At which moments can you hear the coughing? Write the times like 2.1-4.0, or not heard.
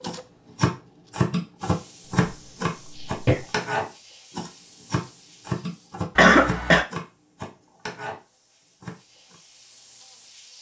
2.2-3.5, 6.2-6.8.